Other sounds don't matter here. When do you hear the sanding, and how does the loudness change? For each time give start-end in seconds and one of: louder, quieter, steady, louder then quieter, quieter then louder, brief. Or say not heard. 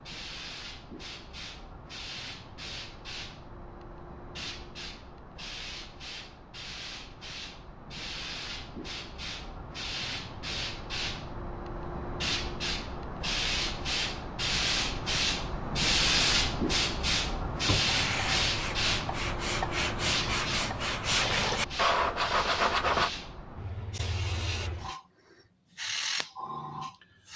17.6-23.1 louder.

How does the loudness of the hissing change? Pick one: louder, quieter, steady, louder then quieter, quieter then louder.
louder then quieter.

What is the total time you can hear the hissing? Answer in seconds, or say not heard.
27 s.